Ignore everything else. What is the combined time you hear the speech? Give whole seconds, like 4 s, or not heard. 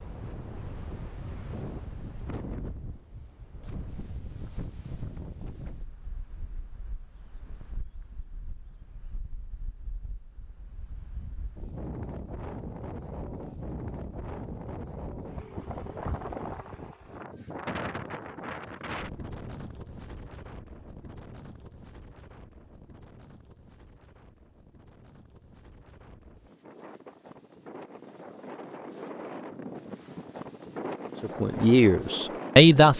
2 s.